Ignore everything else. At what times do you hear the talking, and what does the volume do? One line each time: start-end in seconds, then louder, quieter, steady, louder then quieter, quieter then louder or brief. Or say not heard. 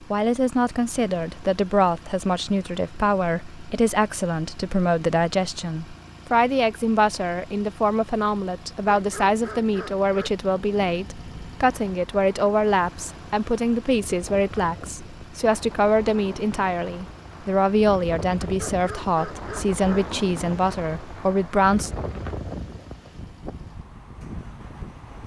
0.0-21.9 steady.